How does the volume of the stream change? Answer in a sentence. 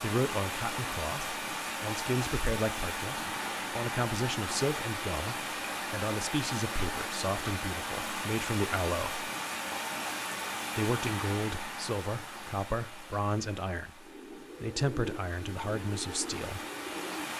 The loudness of the stream goes down.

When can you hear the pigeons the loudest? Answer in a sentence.
The loudest moment of the pigeons is at 15 seconds.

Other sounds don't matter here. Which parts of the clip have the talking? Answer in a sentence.
The talking can be heard from 0.0 to 9.2 s and from 10.8 to 16.6 s.